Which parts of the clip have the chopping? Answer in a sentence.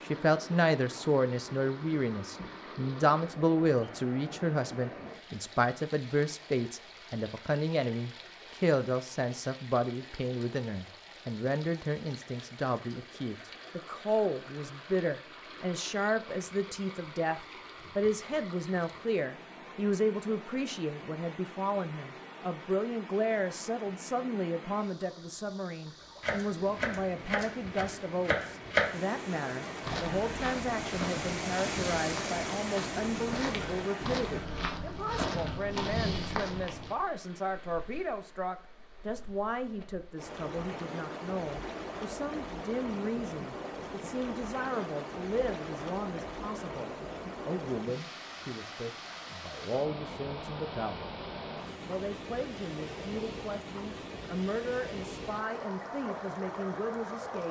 You can hear the chopping from 26.2 to 28.9 s.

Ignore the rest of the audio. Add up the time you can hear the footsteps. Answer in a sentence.
The footsteps can be heard for 7 seconds in total.